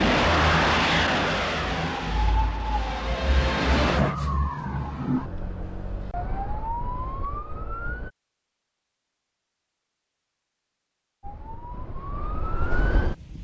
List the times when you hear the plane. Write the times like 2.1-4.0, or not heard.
0.0-4.2.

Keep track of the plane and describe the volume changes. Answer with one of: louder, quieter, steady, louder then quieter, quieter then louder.
quieter then louder.